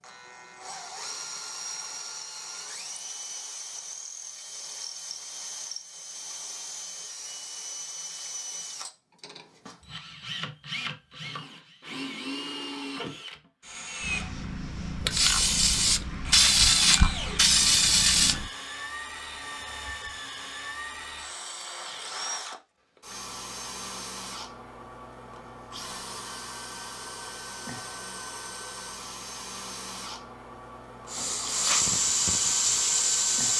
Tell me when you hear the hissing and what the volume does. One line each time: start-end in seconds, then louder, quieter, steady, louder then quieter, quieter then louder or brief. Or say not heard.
14.0-18.5 louder
31.1-33.5 brief.